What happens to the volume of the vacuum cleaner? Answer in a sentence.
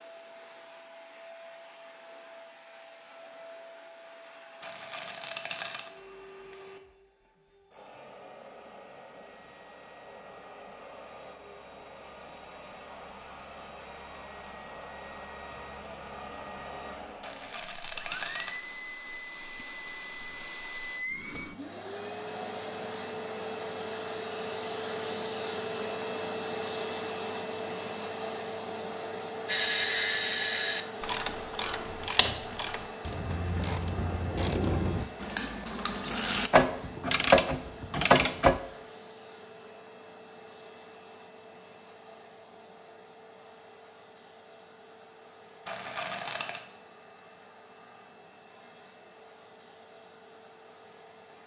The loudness of the vacuum cleaner goes up, then down.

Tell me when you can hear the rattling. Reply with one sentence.
The rattling can be heard from 4.6 to 5.9 s, from 17.2 to 18.6 s and from 45.6 to 46.6 s.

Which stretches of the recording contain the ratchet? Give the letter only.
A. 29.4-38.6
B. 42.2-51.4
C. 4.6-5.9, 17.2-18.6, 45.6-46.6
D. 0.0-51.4
A.